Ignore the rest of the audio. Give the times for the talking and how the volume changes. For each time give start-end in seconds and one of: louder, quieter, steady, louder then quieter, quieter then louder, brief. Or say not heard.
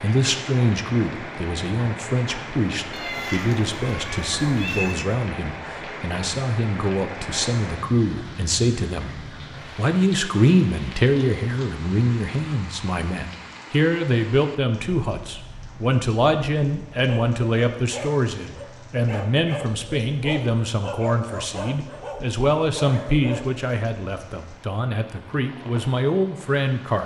0.0-27.0 steady.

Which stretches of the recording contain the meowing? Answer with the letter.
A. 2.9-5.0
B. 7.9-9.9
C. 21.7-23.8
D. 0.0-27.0
A.